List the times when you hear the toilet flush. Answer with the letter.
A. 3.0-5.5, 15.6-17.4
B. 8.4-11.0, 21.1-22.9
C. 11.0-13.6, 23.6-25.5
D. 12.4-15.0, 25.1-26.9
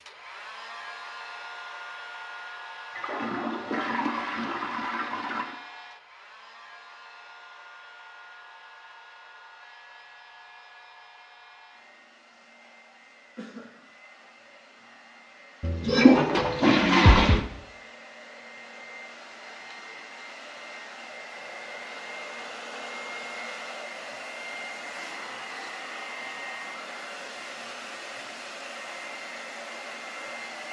A.